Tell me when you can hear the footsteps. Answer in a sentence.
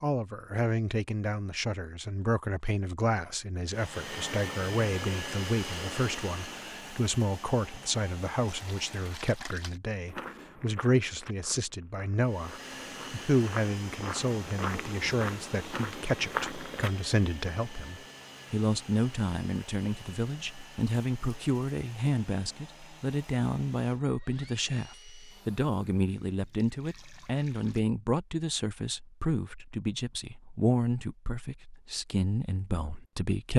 The footsteps can be heard from 10.1 to 16.9 s.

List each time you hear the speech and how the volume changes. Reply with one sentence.
The speech can be heard from 0.0 to 33.5 s, at a steady volume.